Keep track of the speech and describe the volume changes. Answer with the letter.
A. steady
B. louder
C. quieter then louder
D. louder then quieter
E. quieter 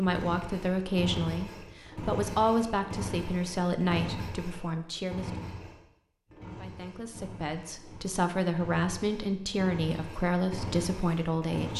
C.